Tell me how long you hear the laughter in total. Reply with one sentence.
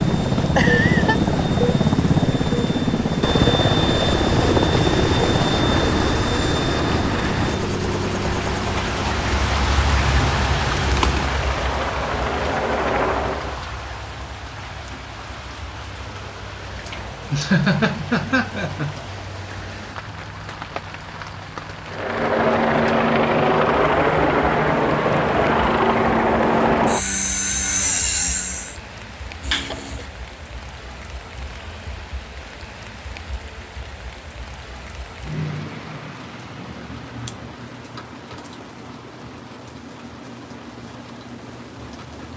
You can hear the laughter for 4 seconds altogether.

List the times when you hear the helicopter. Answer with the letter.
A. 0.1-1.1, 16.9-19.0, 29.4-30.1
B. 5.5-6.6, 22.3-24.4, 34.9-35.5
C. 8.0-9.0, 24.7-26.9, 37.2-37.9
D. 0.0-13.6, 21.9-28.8
D.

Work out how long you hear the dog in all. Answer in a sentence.
The dog can't be heard in this clip.